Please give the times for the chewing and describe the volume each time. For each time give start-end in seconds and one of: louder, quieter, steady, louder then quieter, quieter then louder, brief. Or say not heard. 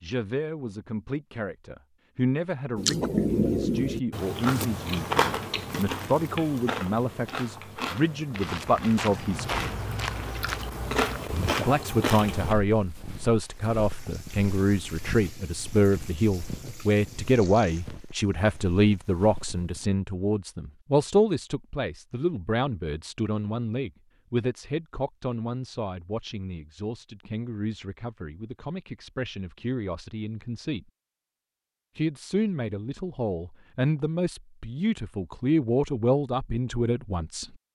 2.8-12.6 quieter then louder.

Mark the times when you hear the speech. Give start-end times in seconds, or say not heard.
0.0-9.7, 11.6-30.9, 31.9-37.5.